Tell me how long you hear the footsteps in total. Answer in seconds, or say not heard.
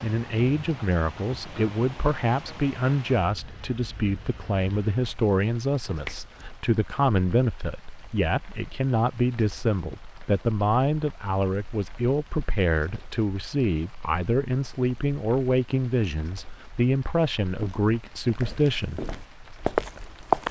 3 s.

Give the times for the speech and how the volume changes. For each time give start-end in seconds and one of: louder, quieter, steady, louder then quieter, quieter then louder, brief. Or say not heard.
0.0-19.1 steady.